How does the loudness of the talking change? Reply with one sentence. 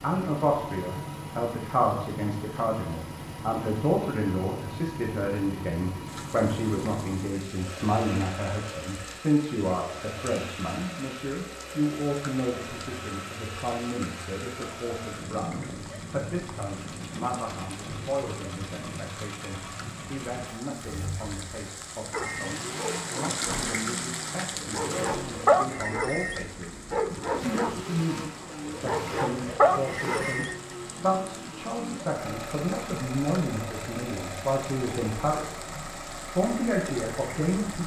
The volume of the talking goes down, then up.